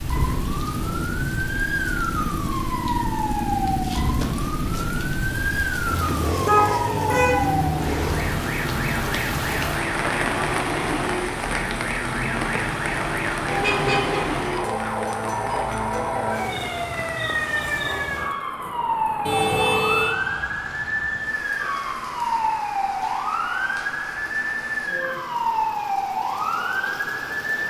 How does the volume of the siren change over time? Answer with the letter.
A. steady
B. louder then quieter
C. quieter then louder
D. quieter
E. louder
A.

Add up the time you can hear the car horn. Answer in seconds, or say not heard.
3 s.